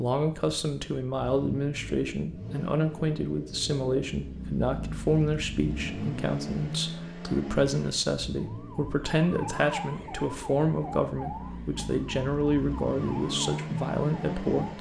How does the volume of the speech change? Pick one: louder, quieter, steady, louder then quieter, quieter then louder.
steady.